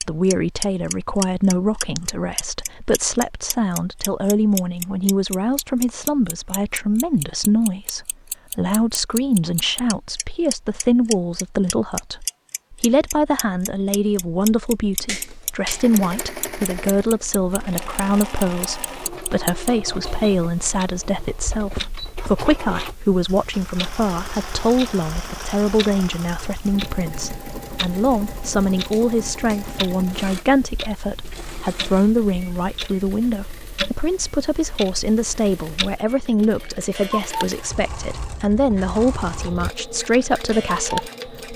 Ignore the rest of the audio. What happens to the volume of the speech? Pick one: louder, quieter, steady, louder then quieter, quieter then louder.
steady.